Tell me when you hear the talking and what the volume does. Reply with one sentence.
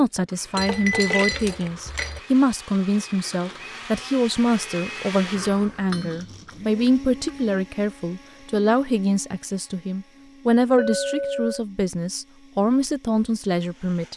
The talking can be heard from 0.0 to 14.1 s, at a steady volume.